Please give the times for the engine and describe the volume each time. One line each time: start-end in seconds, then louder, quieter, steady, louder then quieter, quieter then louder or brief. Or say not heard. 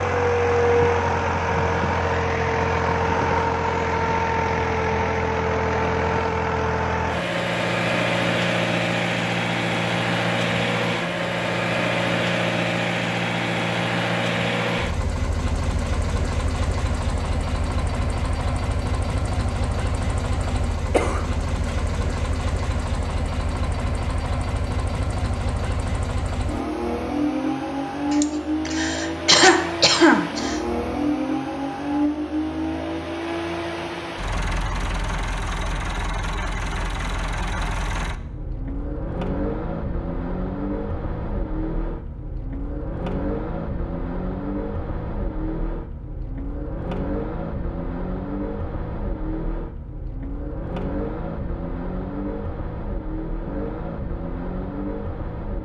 0.0-55.6 quieter.